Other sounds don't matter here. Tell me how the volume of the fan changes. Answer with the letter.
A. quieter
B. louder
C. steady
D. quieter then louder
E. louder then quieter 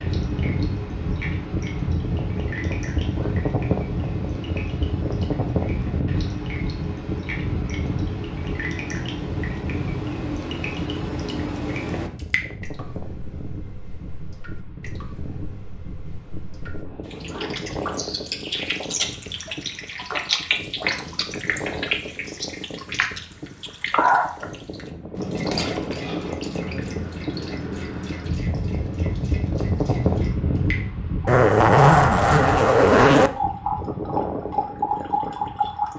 D.